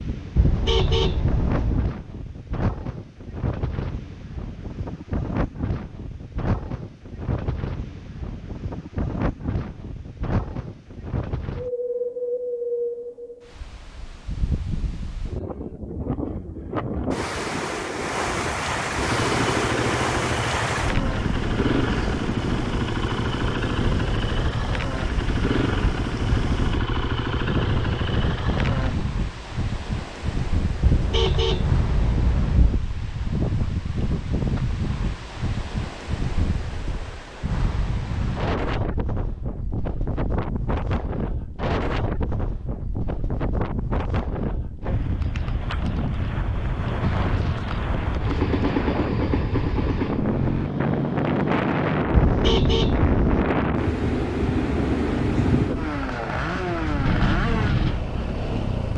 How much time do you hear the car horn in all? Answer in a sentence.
You can hear the car horn for 5 seconds altogether.